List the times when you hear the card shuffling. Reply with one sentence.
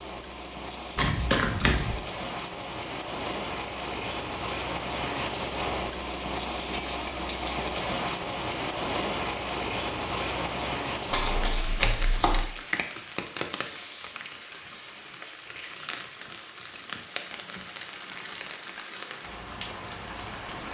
The card shuffling can be heard from 0.9 to 2.0 s and from 11.1 to 12.4 s.